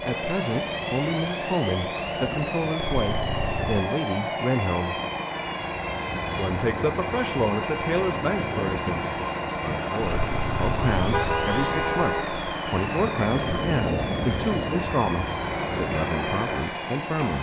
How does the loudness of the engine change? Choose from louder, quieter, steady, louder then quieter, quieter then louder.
steady.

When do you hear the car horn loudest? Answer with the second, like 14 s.
11 s.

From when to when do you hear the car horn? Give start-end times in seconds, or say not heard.
2.8-3.9, 10.0-12.4.